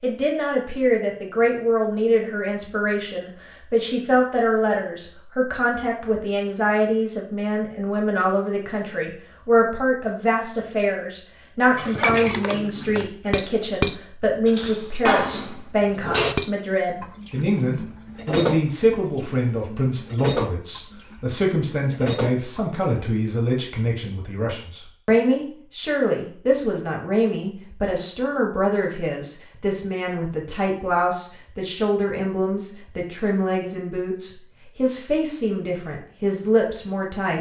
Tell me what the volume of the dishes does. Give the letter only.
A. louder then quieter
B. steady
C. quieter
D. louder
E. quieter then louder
C.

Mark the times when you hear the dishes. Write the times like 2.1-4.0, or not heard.
11.8-23.6.